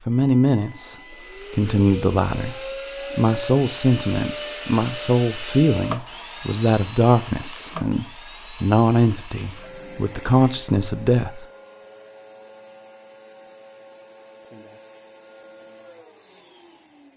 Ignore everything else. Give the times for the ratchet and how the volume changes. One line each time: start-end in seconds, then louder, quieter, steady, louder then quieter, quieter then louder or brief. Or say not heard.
not heard.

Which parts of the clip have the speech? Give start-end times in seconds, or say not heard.
0.1-11.4.